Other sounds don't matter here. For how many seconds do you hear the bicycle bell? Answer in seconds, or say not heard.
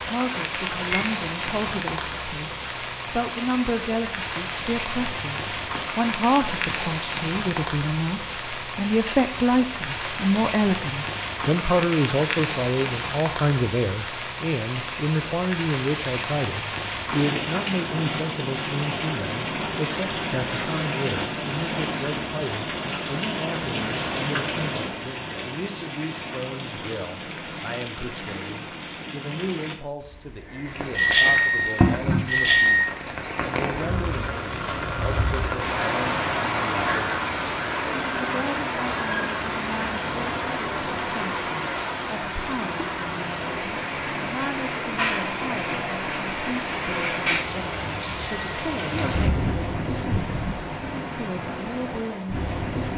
3 s.